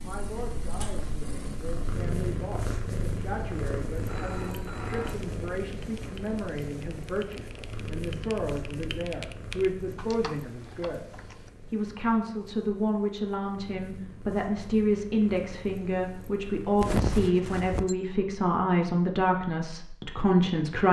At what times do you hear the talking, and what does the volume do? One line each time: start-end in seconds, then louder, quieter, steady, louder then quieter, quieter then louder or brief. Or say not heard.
0.0-20.8 louder.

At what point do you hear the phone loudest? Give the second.
17 s.